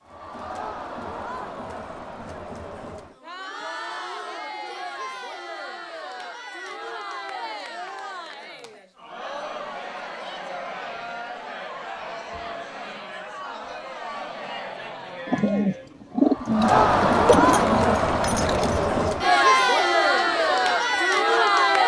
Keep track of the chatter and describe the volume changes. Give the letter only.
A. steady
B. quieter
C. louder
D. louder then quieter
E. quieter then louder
C.